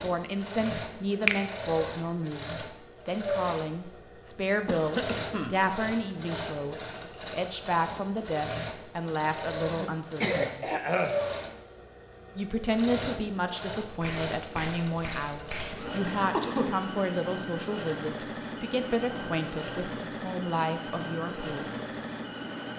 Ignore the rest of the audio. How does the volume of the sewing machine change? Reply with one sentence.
The loudness of the sewing machine stays about the same.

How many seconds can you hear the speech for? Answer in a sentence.
The speech can be heard for 20 seconds in total.